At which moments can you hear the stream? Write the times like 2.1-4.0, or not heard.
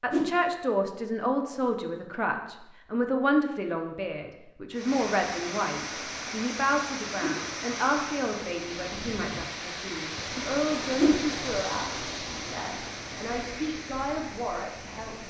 4.7-15.2.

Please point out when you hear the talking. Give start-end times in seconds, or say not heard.
0.0-15.2.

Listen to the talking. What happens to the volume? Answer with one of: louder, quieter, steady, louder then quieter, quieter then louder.
quieter.